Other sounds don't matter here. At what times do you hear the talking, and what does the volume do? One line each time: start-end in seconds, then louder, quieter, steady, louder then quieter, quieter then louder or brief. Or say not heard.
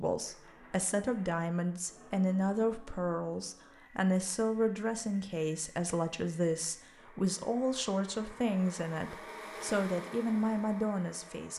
0.0-11.5 steady.